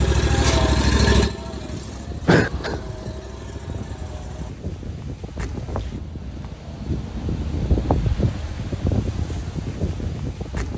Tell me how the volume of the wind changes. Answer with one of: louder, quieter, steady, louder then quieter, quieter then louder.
louder.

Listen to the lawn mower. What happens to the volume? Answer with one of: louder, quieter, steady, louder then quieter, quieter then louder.
quieter.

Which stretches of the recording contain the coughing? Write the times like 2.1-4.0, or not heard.
2.2-2.8.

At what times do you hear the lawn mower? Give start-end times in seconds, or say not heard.
0.0-4.5.